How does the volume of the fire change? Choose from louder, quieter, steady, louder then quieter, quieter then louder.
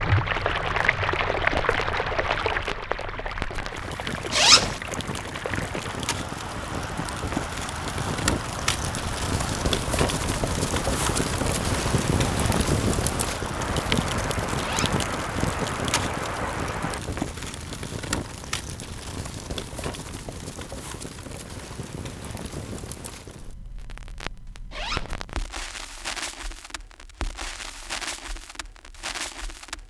louder then quieter.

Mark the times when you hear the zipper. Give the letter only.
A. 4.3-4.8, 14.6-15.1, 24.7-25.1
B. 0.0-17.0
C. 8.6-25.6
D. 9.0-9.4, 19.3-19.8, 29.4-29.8
A.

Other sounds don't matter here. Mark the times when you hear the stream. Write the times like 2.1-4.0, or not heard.
0.0-17.0.